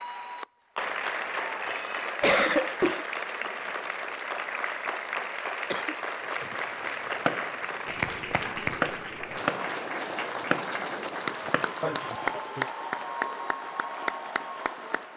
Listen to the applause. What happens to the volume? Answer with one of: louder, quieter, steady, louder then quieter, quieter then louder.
steady.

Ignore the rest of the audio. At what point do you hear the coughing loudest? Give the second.
2 s.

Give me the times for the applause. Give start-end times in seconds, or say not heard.
0.0-15.1.